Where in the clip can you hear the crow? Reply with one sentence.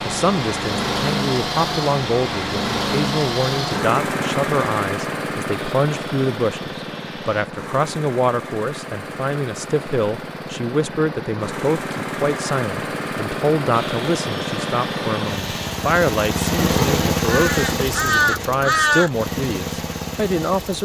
You can hear the crow from 16.6 to 19.1 s.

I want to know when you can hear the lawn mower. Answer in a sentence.
The lawn mower can be heard from 0.0 to 20.8 s.